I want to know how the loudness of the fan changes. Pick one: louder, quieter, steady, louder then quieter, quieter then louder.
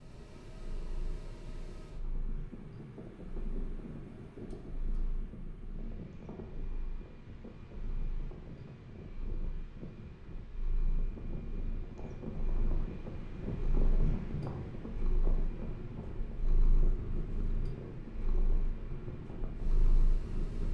louder then quieter.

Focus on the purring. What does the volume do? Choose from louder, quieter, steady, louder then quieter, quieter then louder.
louder.